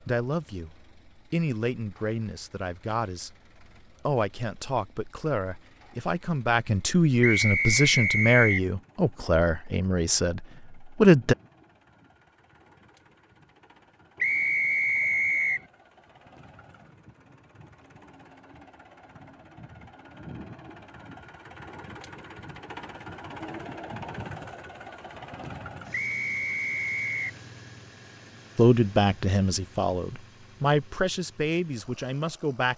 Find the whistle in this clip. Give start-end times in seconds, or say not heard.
7.2-8.7, 14.2-15.7, 25.9-27.4.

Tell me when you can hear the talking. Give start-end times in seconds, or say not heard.
0.1-3.3, 4.0-11.3, 28.6-32.7.